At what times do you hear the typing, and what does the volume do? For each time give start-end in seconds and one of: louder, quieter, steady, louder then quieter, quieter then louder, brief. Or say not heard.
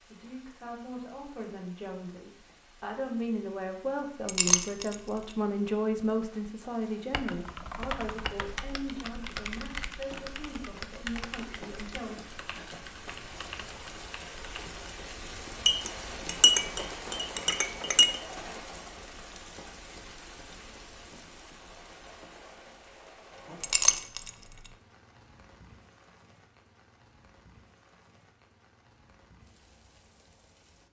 7.1-14.8 quieter.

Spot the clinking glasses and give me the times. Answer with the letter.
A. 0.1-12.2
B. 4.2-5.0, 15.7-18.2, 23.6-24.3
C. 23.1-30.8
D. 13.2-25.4
B.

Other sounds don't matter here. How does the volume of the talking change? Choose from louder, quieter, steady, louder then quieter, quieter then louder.
louder then quieter.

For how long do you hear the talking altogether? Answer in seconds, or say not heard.
12 s.